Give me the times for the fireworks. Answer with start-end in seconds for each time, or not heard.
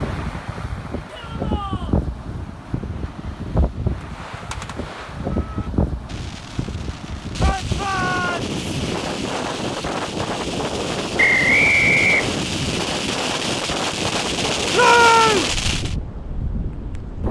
4.0-15.9.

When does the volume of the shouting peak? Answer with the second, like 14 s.
15 s.